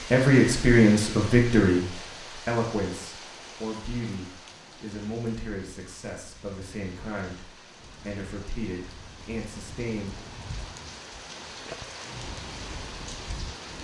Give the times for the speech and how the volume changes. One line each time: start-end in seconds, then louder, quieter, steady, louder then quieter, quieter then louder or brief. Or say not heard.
0.1-10.2 quieter.